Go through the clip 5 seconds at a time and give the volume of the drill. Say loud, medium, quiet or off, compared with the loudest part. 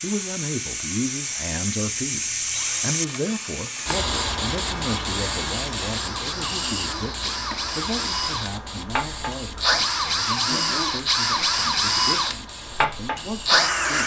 quiet, medium, loud.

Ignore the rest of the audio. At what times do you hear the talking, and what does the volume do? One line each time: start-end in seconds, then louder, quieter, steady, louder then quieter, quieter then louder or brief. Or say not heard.
0.0-14.0 quieter.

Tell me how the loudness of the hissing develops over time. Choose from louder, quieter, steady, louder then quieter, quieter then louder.
quieter.